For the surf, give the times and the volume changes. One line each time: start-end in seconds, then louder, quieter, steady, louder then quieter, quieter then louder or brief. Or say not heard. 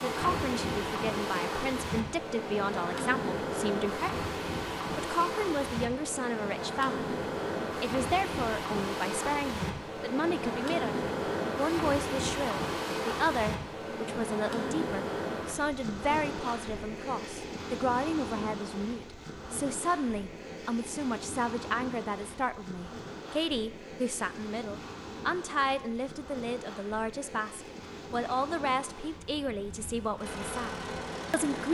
0.0-31.6 quieter.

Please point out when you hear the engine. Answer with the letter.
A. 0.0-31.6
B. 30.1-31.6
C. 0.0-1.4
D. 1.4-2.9
B.